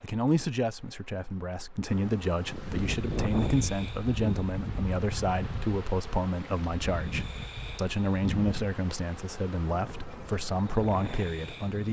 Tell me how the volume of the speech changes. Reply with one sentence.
The volume of the speech stays about the same.